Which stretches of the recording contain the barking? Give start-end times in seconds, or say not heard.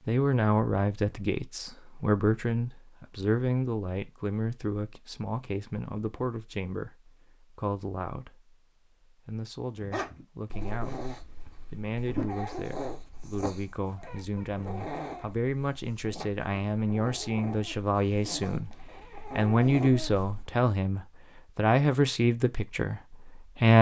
9.8-20.4.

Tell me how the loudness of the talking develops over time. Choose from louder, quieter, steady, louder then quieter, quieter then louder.
quieter then louder.